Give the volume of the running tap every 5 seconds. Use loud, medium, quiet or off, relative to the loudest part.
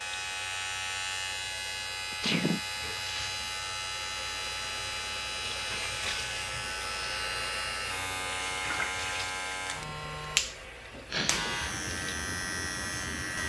medium, loud, medium.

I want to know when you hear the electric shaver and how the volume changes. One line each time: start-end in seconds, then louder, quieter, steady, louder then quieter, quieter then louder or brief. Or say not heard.
0.0-13.4 steady.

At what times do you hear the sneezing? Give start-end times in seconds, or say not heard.
2.1-2.6, 11.1-11.6.